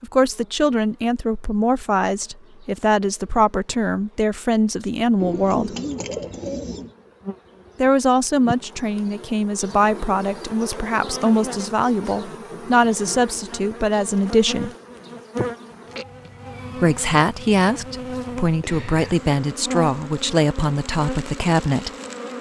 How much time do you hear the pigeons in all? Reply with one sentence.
The pigeons can be heard for 2 seconds in total.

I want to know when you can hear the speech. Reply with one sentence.
The speech can be heard from 0.0 to 5.8 s, from 7.8 to 14.7 s and from 16.8 to 21.9 s.